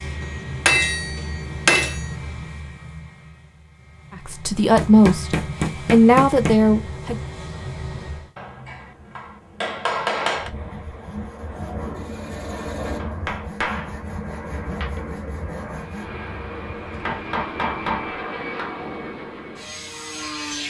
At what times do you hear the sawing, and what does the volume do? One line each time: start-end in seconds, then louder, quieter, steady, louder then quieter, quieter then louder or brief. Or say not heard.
10.7-16.1 steady.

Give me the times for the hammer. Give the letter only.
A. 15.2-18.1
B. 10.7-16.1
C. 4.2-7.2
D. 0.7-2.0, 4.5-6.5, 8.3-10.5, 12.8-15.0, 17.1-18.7
D.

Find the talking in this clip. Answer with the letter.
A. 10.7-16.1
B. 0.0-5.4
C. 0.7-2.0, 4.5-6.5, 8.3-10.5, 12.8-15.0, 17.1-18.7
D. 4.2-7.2
D.